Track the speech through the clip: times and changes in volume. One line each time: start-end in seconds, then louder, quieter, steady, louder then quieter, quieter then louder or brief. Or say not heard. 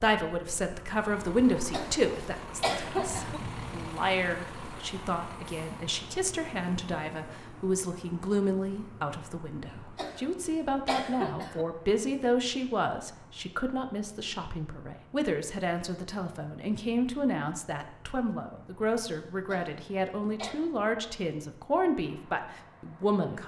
0.0-23.4 steady.